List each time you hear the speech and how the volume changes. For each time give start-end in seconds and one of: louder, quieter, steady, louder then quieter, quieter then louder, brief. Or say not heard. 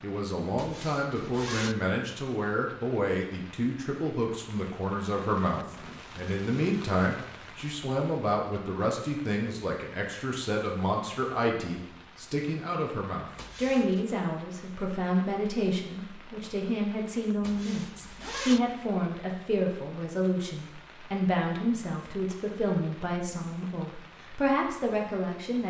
0.0-25.6 steady.